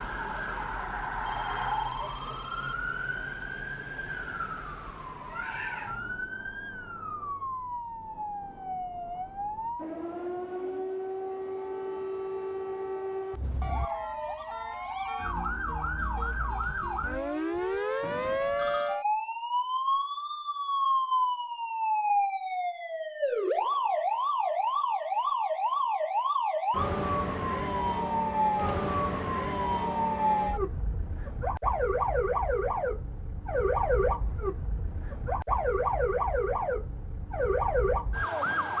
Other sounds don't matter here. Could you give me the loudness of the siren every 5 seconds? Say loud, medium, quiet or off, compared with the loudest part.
medium, medium, medium, loud, loud, loud, loud, loud.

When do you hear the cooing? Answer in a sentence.
You can't hear the cooing here.